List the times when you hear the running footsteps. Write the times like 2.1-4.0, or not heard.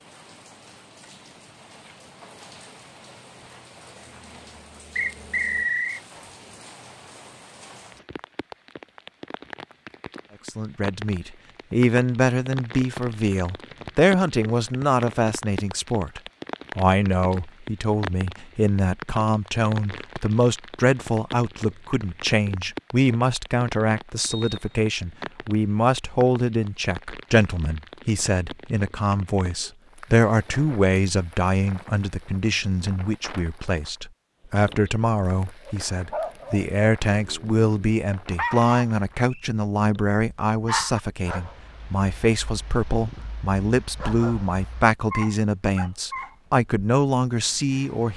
not heard.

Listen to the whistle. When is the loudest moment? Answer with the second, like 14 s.
6 s.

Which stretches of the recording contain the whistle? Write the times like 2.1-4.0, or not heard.
5.0-6.0, 24.1-24.8, 38.6-39.5.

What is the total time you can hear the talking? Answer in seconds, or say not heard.
38 s.